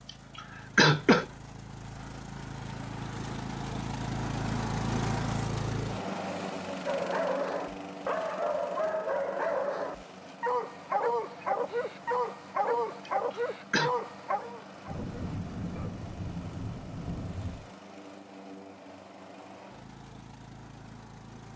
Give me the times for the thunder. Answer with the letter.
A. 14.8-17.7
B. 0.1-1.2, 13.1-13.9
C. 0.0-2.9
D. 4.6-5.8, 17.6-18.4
A.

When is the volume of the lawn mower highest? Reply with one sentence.
The loudest moment of the lawn mower is at 5 seconds.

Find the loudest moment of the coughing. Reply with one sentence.
The volume of the coughing peaks at 1 second.